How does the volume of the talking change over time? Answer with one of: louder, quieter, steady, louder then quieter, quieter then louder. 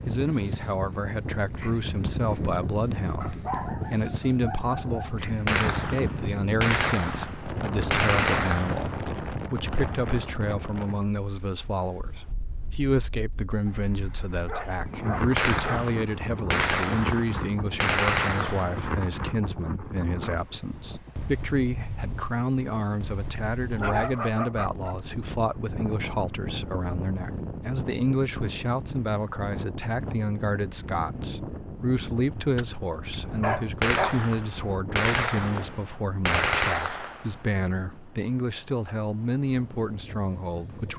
steady.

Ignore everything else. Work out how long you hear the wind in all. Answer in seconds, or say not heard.
41 s.